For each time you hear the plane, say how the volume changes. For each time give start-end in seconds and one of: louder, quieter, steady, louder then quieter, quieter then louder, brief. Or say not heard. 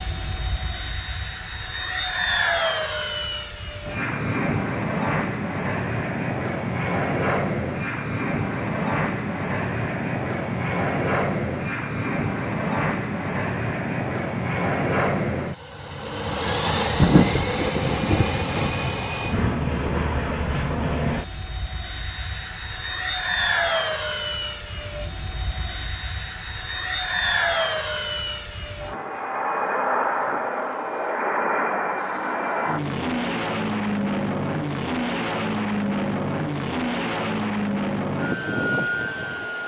0.0-39.6 steady.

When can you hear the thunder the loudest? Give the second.
17 s.